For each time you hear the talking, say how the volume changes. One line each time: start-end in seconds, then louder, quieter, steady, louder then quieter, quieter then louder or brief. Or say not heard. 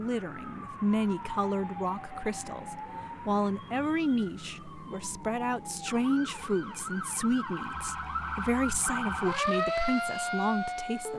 0.0-11.1 steady.